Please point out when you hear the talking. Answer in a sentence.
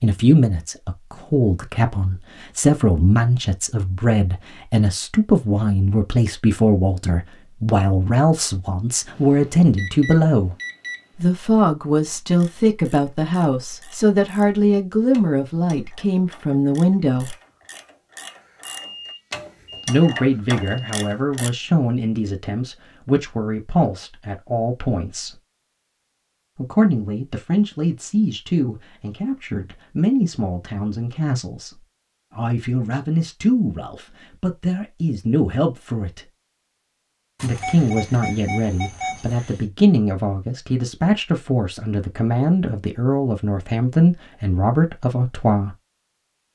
You can hear the talking from 0.0 to 10.6 s, from 11.2 to 17.4 s, from 19.9 to 25.4 s, from 26.6 to 36.2 s and from 37.4 to 45.8 s.